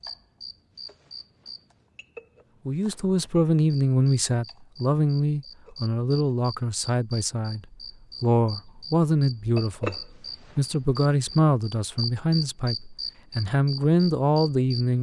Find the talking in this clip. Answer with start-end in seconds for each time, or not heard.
2.6-14.9.